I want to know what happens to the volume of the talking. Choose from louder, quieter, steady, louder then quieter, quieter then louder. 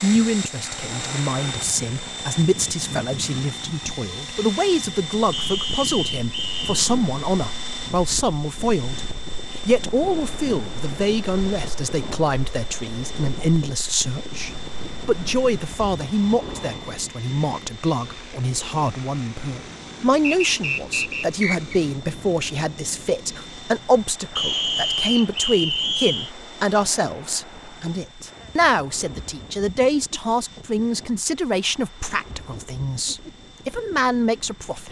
steady.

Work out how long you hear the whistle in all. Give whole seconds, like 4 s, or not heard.
5 s.